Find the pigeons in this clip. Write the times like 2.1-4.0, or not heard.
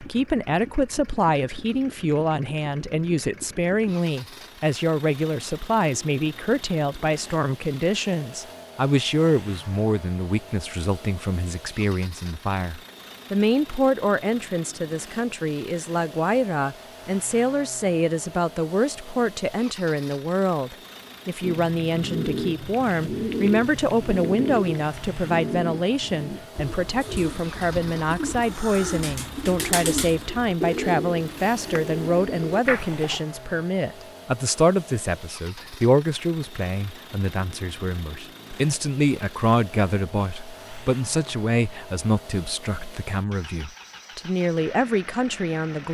21.4-33.2.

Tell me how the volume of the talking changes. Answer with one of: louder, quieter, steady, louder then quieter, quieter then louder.
steady.